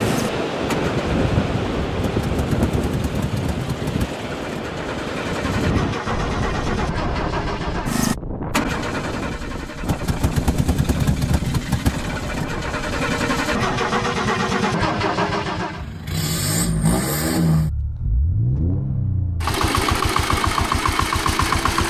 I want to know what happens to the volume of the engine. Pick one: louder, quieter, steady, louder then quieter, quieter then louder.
louder.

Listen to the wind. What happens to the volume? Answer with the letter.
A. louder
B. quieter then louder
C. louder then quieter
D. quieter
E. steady
D.